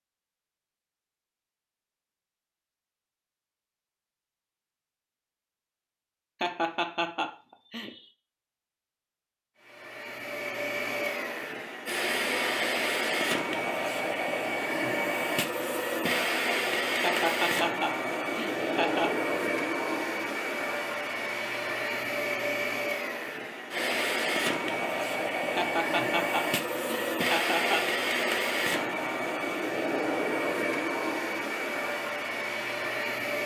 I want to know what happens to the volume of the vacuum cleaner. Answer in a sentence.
The volume of the vacuum cleaner stays about the same.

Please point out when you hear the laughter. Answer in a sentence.
The laughter can be heard from 6.4 to 8.1 s, from 17.0 to 19.1 s and from 25.6 to 27.9 s.